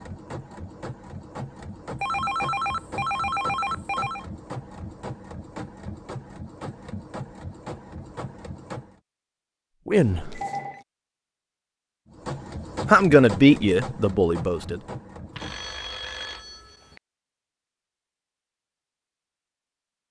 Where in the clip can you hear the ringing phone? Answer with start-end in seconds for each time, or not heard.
2.0-4.2, 9.9-10.8, 15.3-17.0.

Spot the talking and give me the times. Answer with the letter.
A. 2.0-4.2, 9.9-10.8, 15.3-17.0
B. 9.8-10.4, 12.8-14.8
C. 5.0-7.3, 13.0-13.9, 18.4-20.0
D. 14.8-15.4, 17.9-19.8
B.